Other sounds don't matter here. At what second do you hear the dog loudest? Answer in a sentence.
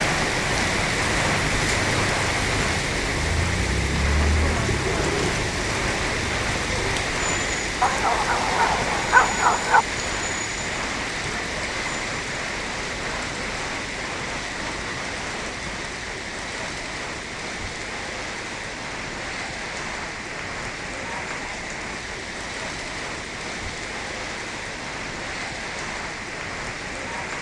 The loudest moment of the dog is at 9 seconds.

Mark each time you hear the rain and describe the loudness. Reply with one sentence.
You can hear the rain from 0.0 to 27.3 s, getting quieter.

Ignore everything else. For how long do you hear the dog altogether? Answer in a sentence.
You can hear the dog for 2 seconds altogether.